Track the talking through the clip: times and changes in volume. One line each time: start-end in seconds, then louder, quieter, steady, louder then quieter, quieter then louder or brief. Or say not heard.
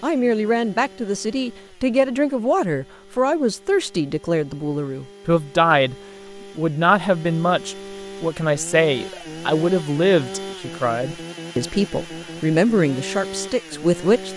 0.0-14.3 steady.